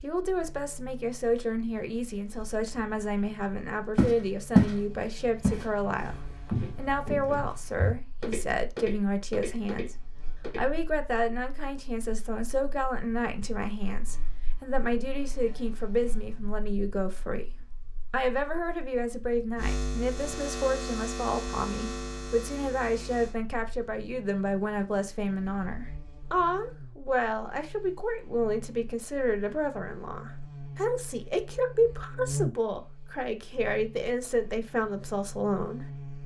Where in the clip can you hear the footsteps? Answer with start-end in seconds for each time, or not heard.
4.0-4.8, 5.4-10.7.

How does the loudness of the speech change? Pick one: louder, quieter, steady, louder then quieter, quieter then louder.
steady.